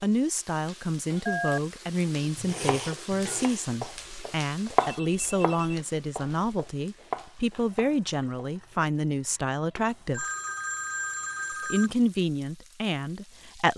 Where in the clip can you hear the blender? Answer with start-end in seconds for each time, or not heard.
not heard.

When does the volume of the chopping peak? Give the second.
5 s.